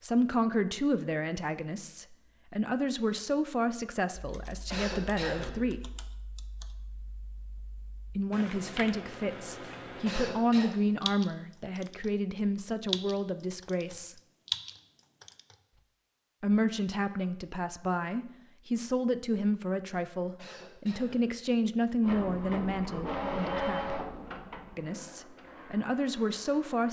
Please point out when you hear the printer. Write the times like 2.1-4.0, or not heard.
22.0-26.8.